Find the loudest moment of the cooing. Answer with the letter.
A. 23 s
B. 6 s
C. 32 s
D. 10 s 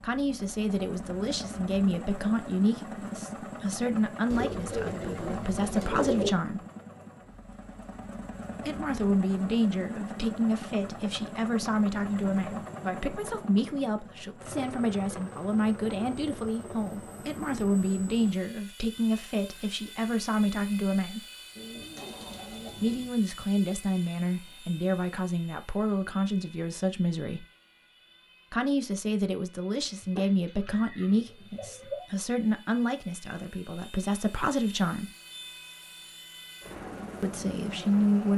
B.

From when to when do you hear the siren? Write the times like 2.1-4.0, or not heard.
not heard.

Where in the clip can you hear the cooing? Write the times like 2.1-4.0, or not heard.
4.3-6.3, 21.6-23.1, 30.0-32.0.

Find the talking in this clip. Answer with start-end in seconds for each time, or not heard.
0.0-6.7, 8.7-21.2, 22.8-27.4, 28.5-35.1, 37.2-38.3.